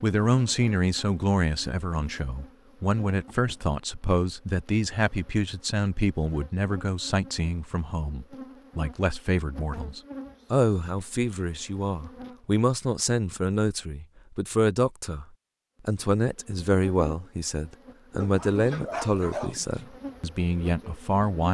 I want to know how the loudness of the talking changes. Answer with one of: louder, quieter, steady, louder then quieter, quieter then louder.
steady.